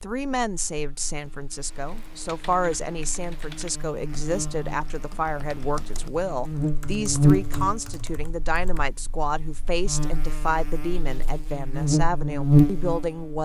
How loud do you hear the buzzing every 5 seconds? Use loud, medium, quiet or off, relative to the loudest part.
quiet, loud, loud.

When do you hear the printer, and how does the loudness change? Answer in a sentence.
You can't hear the printer here.